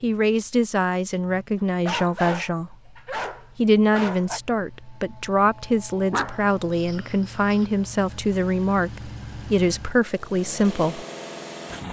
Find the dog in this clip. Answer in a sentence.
The dog can be heard from 1.9 to 4.4 s and from 6.1 to 7.7 s.